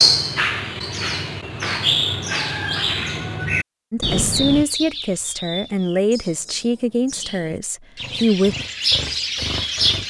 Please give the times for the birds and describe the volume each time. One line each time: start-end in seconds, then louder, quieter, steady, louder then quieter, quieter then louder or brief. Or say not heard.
0.0-10.0 quieter then louder.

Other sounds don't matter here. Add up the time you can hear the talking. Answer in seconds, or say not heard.
5 s.